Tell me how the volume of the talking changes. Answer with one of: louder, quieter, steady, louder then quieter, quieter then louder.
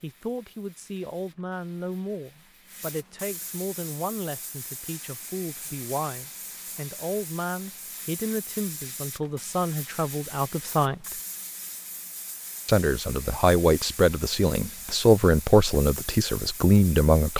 louder.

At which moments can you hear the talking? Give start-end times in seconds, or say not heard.
0.0-11.2, 12.7-17.3.